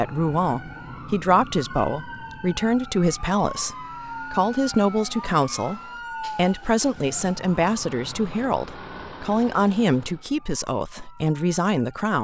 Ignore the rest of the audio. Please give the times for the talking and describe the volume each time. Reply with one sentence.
The talking can be heard from 0.0 to 12.1 s, at a steady volume.